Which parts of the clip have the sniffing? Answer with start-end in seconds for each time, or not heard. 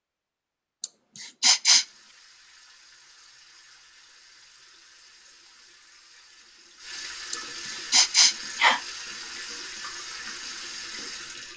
0.8-1.9, 7.3-8.8.